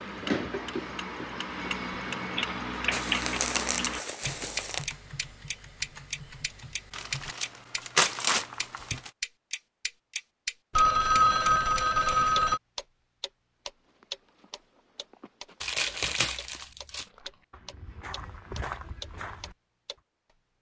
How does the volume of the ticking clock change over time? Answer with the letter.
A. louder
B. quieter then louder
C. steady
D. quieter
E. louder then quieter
D.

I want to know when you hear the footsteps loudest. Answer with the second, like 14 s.
19 s.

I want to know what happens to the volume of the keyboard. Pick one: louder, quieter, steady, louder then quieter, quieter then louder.
quieter.